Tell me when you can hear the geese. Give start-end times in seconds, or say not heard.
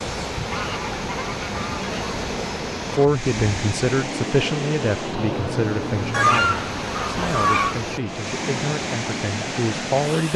0.4-1.9, 6.1-7.9.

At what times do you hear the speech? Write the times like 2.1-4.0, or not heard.
3.0-10.3.